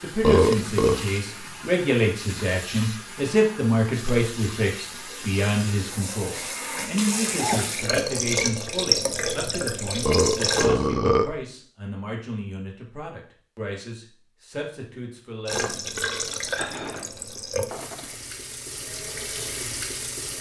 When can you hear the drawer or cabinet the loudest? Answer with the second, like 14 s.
17 s.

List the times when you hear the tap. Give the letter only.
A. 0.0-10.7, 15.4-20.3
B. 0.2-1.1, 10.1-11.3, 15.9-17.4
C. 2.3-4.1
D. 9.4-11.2
A.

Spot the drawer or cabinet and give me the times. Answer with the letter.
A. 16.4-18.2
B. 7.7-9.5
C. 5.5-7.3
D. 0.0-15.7
A.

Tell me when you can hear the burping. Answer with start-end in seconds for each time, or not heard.
0.2-1.1, 10.1-11.3, 15.9-17.4.